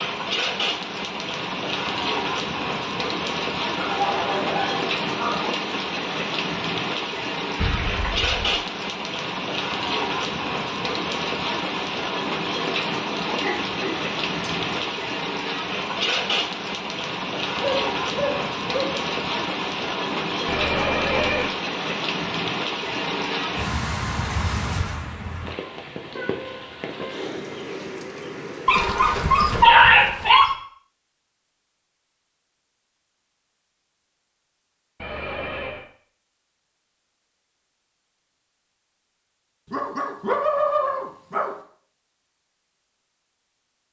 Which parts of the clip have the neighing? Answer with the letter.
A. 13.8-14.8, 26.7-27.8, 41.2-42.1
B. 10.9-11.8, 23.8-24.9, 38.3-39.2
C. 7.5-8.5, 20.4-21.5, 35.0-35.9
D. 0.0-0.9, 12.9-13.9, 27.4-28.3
C.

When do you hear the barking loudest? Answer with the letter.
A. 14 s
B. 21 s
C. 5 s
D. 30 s
D.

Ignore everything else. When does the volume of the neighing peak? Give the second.
21 s.